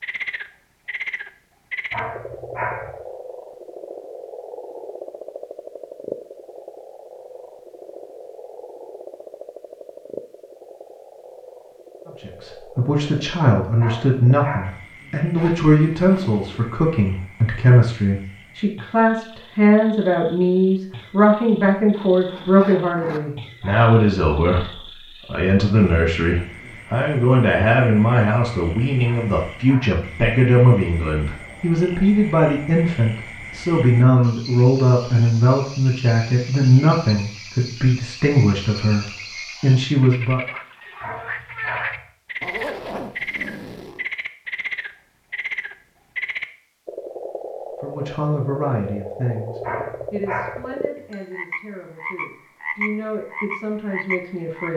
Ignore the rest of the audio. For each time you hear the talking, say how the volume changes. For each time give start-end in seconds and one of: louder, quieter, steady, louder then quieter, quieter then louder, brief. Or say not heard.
12.2-40.4 steady
47.8-54.7 quieter then louder.